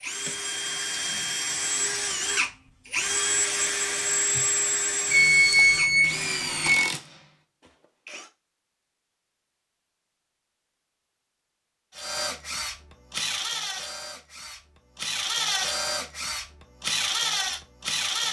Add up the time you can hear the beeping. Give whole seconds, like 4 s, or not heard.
2 s.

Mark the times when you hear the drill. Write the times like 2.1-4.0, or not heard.
0.0-8.3, 11.9-18.2.